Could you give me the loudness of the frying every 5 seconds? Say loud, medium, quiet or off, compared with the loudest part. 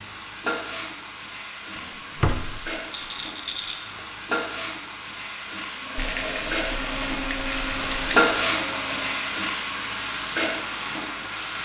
medium, loud, loud.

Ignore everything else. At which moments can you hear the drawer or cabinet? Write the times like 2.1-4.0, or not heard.
1.8-2.7.